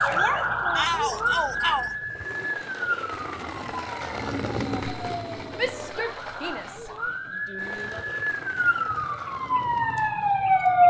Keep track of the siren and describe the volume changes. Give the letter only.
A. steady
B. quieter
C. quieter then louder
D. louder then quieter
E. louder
C.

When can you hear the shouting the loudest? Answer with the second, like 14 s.
1 s.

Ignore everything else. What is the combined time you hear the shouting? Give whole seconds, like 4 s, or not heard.
4 s.